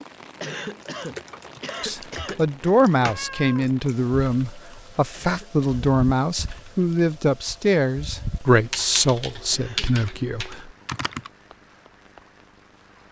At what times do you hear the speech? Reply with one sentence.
You can hear the speech from 1.8 to 10.7 s.